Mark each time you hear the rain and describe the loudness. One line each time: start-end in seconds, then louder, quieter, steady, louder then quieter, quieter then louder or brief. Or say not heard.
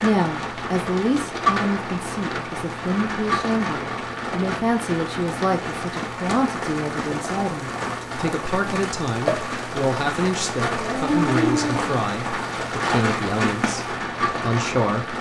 0.0-15.1 steady.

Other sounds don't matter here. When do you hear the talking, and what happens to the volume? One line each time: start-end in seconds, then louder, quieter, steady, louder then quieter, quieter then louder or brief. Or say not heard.
0.0-15.1 steady.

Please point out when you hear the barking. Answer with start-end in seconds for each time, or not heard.
10.6-11.9.